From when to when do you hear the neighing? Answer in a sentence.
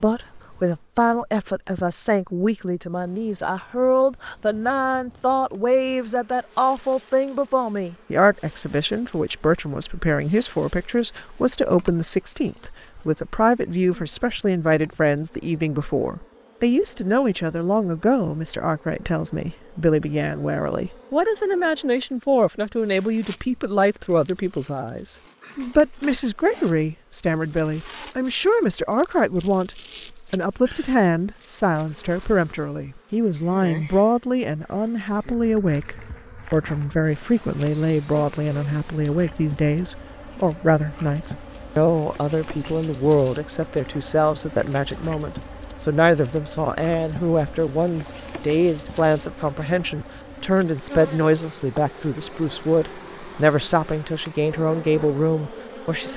You can't hear the neighing here.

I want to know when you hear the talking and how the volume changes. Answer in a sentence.
You can hear the talking from 0.0 to 56.1 s, at a steady volume.